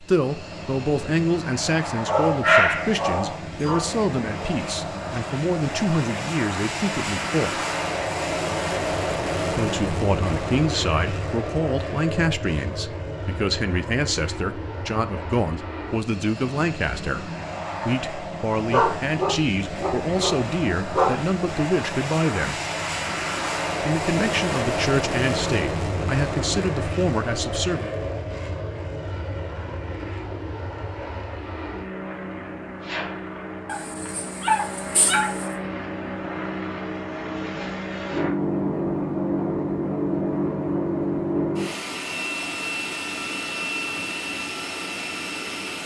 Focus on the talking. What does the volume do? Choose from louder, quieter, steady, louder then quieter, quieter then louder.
steady.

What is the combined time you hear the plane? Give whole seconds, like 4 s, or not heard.
46 s.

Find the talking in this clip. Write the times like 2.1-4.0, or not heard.
0.0-7.5, 9.5-22.6, 23.8-27.9.